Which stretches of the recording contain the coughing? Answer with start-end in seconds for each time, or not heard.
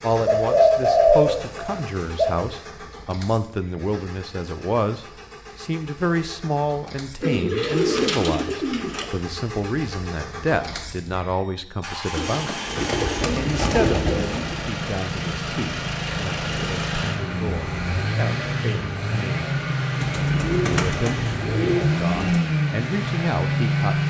not heard.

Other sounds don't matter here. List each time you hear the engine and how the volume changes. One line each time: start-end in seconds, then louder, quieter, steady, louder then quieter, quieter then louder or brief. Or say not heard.
0.0-24.0 louder.